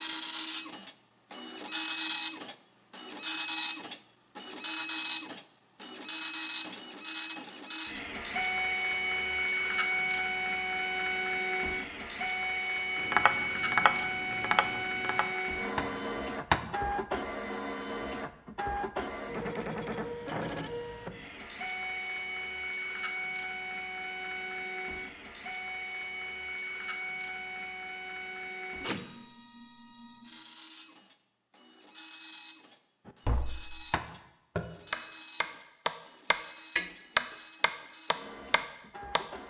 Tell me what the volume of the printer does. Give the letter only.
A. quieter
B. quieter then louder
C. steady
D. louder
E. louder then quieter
A.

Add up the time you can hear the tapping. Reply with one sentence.
The tapping can be heard for 10 seconds in total.